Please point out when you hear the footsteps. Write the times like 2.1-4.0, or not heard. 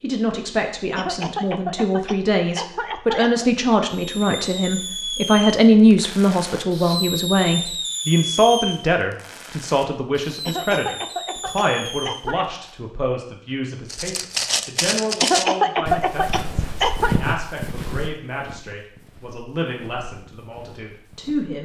13.8-21.6.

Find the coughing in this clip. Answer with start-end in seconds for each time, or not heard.
0.9-3.5, 10.4-12.4, 15.2-17.1.